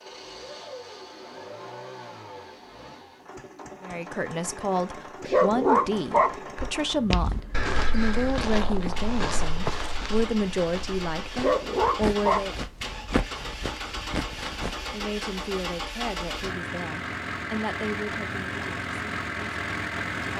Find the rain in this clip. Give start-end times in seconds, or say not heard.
not heard.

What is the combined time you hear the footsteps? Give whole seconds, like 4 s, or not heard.
8 s.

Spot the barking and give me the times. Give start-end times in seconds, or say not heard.
5.2-6.3, 11.3-12.4.